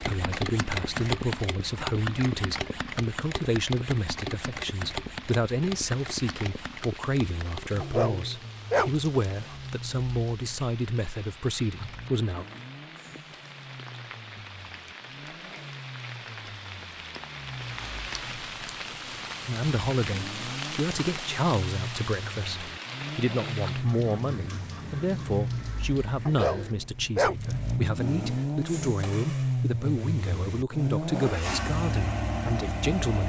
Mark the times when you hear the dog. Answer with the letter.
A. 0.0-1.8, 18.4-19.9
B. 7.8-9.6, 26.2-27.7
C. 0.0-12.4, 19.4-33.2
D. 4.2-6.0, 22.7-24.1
B.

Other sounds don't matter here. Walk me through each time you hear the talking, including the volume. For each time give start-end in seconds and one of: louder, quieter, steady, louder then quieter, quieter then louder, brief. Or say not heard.
0.0-12.4 steady
19.4-33.2 steady.